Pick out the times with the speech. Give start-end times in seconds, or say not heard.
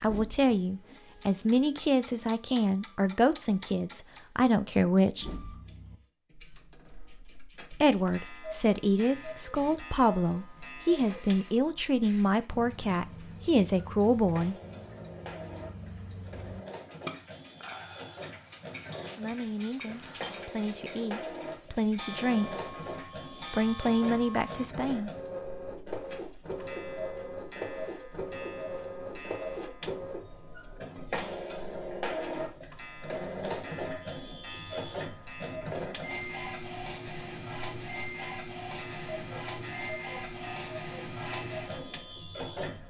0.0-5.2, 7.7-14.6, 19.1-22.6, 23.5-25.1.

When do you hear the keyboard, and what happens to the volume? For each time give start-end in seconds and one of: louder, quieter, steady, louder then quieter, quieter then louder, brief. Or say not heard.
not heard.